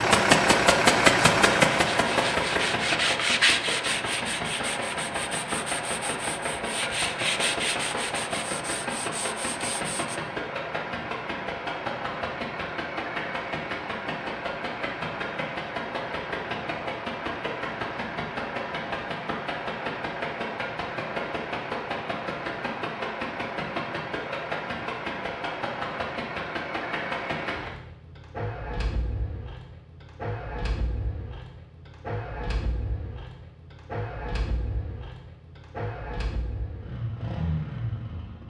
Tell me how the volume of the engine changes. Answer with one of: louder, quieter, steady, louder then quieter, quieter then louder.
quieter.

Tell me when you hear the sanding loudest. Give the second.
3 s.